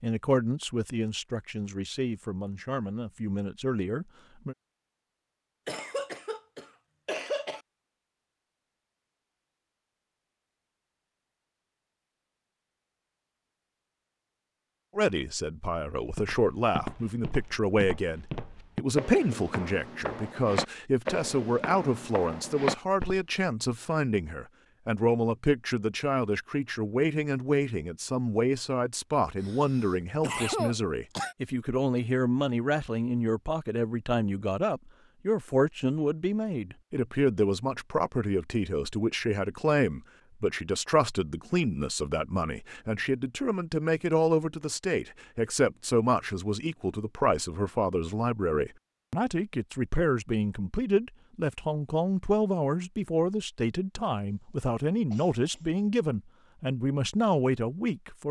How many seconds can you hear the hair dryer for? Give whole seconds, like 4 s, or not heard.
not heard.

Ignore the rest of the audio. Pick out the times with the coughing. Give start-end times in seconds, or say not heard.
5.7-7.6, 29.4-31.4, 55.1-55.7.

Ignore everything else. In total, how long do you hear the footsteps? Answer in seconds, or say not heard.
7 s.